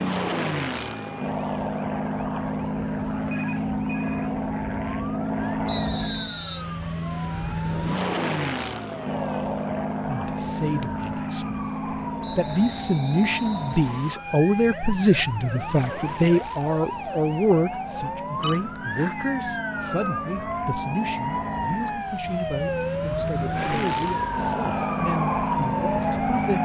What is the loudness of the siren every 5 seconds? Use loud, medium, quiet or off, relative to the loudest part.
quiet, quiet, medium, medium, loud, loud.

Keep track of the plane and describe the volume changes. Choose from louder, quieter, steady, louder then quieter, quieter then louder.
quieter then louder.